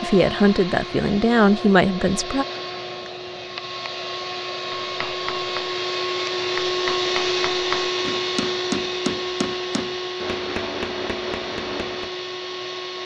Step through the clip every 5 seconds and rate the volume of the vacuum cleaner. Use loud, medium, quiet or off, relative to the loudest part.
medium, loud, medium.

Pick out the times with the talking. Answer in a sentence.
You can hear the talking from 0.0 to 2.5 s.